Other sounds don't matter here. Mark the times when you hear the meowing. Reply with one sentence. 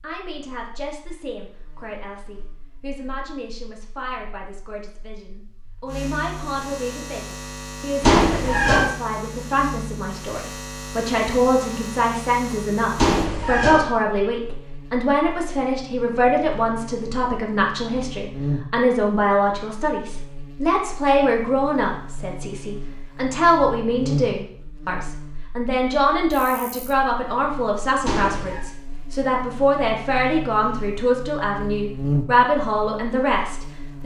The meowing can be heard from 8.0 to 8.9 s, from 12.9 to 13.9 s and from 28.1 to 28.6 s.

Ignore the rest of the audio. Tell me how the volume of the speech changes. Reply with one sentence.
The volume of the speech goes up.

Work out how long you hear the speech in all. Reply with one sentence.
You can hear the speech for 34 seconds altogether.